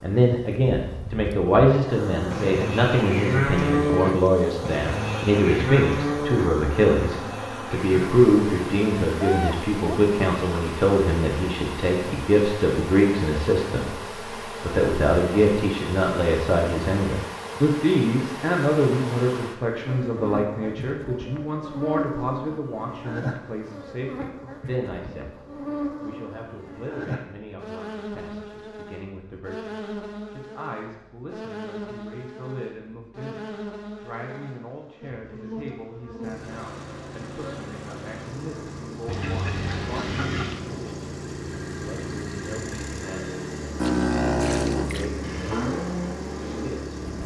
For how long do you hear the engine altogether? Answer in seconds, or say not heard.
11 s.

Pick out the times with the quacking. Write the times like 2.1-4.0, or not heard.
39.0-40.6.